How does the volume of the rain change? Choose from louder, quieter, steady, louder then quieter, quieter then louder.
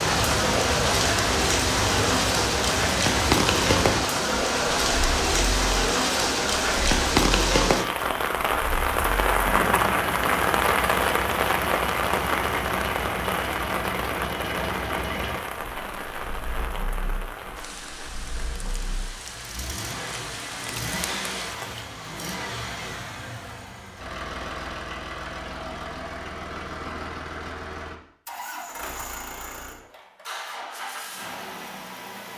quieter.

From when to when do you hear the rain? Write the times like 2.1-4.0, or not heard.
0.0-21.9.